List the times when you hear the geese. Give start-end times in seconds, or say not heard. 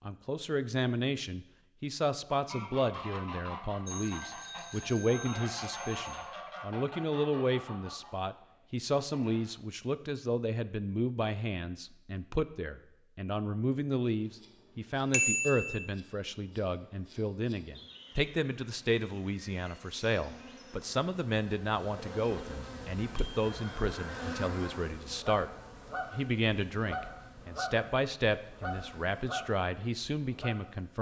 2.3-9.4, 23.4-30.6.